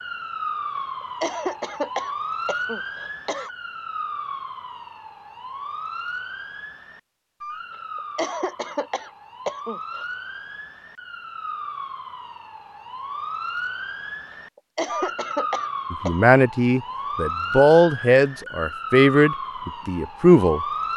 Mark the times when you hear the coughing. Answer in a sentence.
You can hear the coughing from 0.8 to 3.5 s, from 8.0 to 10.1 s and from 14.6 to 16.1 s.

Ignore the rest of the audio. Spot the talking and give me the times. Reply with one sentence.
You can hear the talking from 15.9 to 20.6 s.